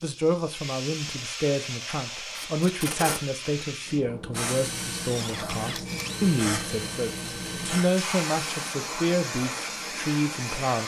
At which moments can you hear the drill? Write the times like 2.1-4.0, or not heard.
4.3-8.8.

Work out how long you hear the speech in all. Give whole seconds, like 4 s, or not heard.
11 s.